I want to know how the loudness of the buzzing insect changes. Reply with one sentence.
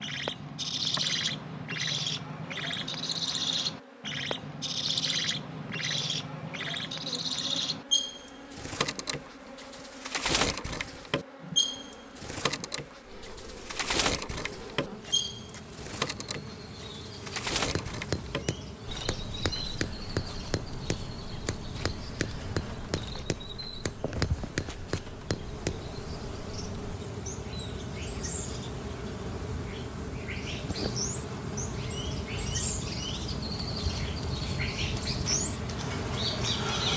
The volume of the buzzing insect goes up.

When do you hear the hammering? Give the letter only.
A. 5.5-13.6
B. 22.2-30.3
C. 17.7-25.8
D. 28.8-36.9
C.